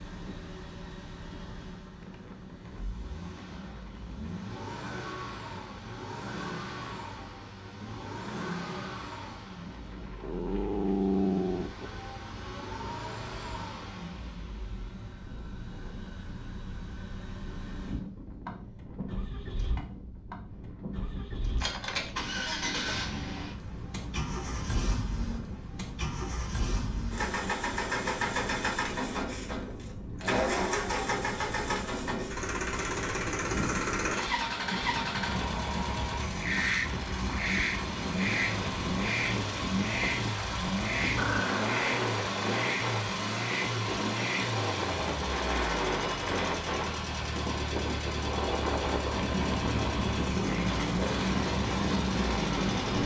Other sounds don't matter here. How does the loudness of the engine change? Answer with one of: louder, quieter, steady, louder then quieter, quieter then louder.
louder.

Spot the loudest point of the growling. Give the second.
11 s.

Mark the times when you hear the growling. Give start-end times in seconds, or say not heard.
10.2-11.9, 41.1-41.9.